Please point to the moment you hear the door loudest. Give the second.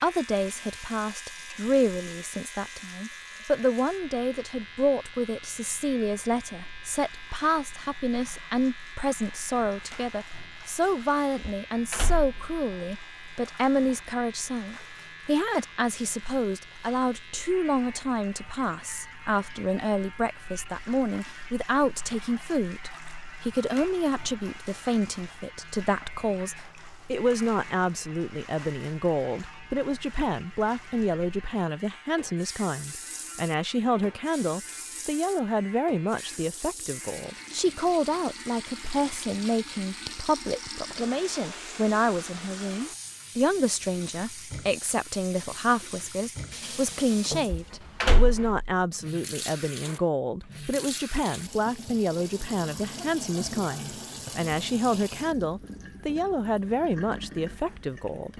48 s.